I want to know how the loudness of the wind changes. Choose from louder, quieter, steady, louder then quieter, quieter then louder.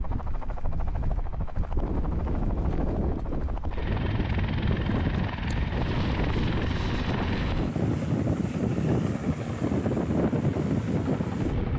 louder.